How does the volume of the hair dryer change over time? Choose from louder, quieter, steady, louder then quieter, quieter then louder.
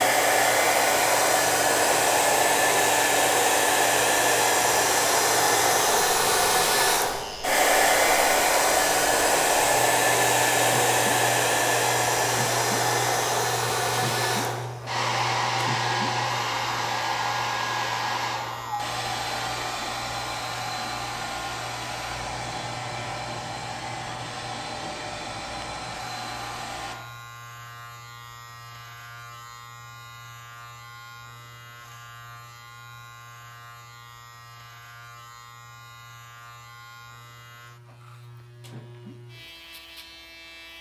quieter.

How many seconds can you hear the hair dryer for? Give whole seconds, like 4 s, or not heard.
27 s.